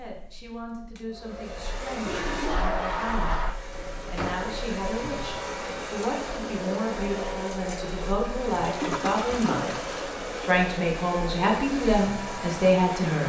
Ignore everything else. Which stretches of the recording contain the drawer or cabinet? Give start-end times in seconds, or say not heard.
3.7-4.5.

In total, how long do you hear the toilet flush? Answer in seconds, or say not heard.
3 s.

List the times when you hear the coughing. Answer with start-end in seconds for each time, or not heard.
not heard.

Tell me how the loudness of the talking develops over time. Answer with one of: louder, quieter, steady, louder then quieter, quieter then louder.
louder.